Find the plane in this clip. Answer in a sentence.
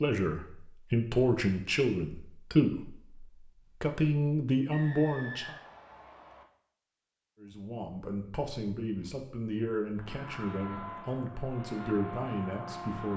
You can hear the plane from 9.9 to 13.1 s.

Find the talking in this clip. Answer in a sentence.
The talking can be heard from 0.0 to 5.5 s and from 7.4 to 13.1 s.